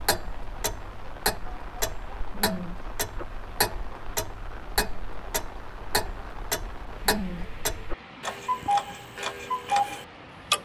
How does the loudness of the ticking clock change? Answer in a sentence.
The loudness of the ticking clock goes up.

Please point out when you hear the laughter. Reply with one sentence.
You can hear the laughter from 2.3 to 3.2 s and from 7.0 to 8.0 s.